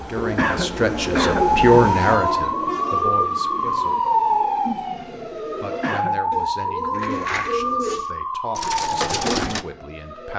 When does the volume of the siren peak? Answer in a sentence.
The loudest moment of the siren is at 4 seconds.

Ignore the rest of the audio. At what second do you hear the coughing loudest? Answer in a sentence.
The loudest moment of the coughing is at 1 second.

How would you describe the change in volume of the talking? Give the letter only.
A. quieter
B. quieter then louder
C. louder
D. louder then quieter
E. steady
A.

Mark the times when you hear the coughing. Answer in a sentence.
You can hear the coughing from 0.3 to 1.5 s and from 5.8 to 6.2 s.